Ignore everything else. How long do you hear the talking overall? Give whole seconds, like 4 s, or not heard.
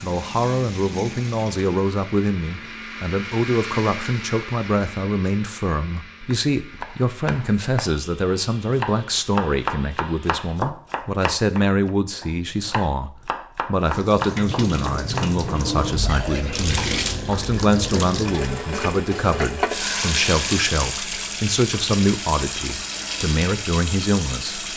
25 s.